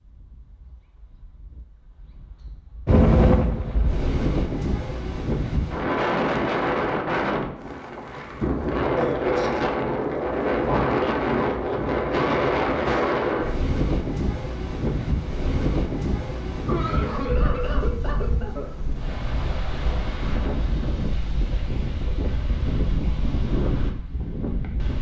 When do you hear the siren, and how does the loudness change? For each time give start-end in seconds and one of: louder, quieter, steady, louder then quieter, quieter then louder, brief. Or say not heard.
not heard.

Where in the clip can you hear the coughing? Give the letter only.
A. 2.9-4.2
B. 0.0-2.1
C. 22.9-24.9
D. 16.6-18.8
D.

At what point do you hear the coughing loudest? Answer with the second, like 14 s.
17 s.